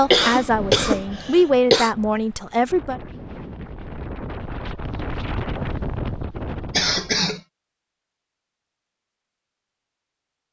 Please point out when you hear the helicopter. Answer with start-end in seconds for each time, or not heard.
not heard.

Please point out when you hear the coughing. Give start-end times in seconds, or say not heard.
0.1-1.9, 6.7-7.4.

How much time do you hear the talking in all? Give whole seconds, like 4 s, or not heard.
3 s.